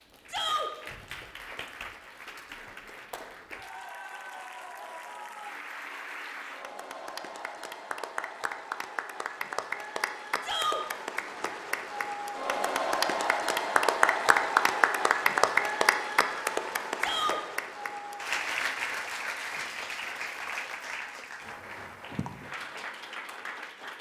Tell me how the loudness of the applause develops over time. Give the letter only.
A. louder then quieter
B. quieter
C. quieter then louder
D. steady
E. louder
A.